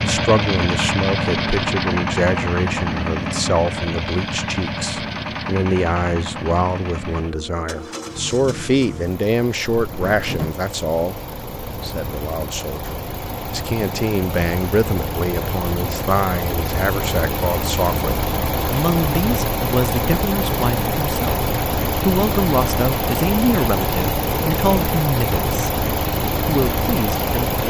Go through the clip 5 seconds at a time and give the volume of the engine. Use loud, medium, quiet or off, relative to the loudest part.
loud, medium, medium, loud, loud, loud.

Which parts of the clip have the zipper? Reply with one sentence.
You can hear the zipper from 9.7 to 10.6 s.